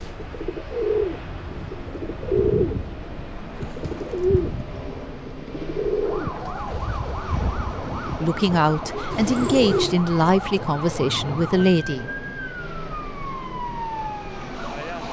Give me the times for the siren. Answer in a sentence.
The siren can be heard from 6.0 to 15.0 s.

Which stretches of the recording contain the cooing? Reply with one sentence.
You can hear the cooing from 0.0 to 10.0 s.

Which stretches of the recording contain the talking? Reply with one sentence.
The talking can be heard from 7.8 to 12.3 s.